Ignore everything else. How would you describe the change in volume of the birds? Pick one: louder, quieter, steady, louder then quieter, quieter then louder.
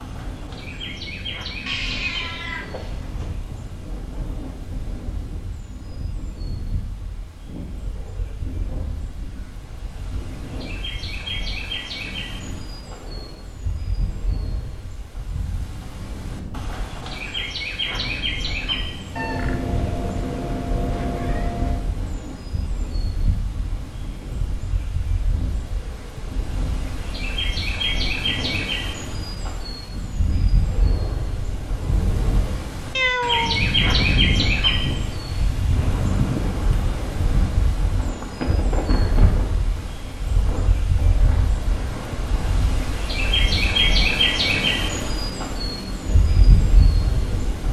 louder.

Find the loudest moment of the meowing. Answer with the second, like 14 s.
33 s.